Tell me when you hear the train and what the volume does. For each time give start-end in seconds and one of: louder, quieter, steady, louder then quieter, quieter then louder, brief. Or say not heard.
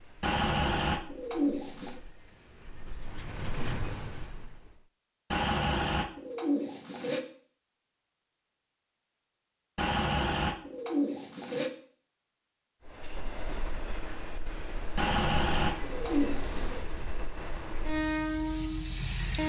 0.0-4.9 louder
12.8-19.4 louder.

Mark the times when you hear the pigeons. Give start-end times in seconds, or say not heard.
0.2-2.0, 5.3-7.2, 9.8-11.7, 14.9-16.8.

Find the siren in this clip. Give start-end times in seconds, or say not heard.
not heard.